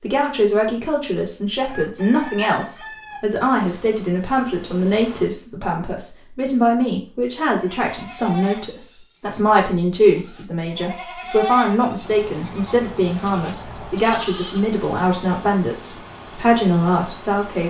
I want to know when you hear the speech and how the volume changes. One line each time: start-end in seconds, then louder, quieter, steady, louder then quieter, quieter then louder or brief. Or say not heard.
0.0-17.6 steady.